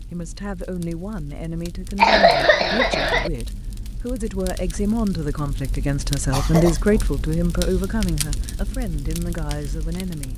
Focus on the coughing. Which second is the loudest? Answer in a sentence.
The volume of the coughing peaks at 2 seconds.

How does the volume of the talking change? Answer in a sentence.
The volume of the talking goes up, then down.